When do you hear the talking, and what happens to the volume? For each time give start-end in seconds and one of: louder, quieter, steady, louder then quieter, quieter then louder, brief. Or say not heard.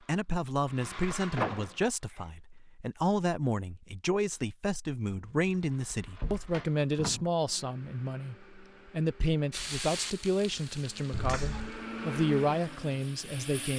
0.1-13.7 steady.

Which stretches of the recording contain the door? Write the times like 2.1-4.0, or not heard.
1.4-2.2, 5.2-7.3, 11.1-11.8.